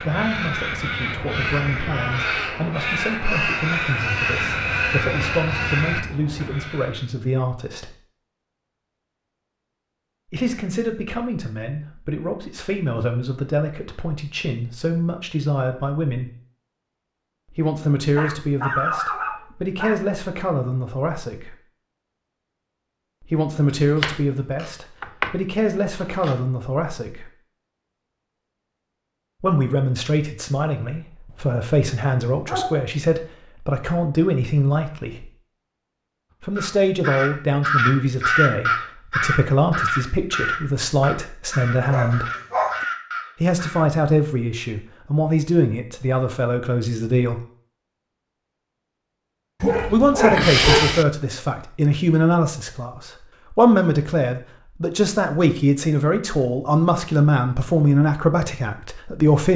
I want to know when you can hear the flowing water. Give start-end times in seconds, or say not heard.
not heard.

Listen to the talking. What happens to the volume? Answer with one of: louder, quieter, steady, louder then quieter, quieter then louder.
louder.